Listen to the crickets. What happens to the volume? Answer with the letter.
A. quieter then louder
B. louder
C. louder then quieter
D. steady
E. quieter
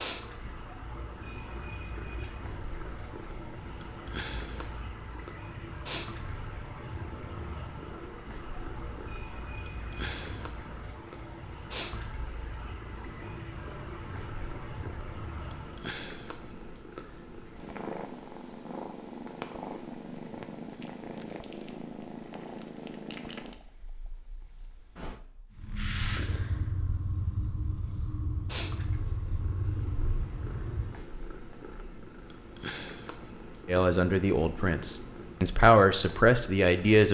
A.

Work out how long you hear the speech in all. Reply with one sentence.
You can hear the speech for 3 seconds altogether.